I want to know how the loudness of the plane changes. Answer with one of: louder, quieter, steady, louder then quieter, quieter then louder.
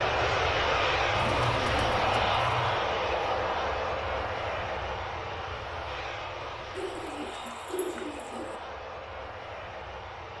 quieter.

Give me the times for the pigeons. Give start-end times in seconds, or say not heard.
1.1-2.8, 6.8-8.6.